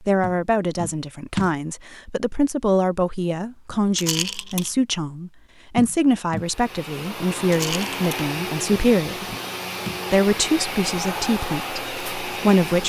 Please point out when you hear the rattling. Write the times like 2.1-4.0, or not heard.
4.0-4.7, 7.5-8.1.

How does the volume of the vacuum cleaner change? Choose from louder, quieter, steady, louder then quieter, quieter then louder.
steady.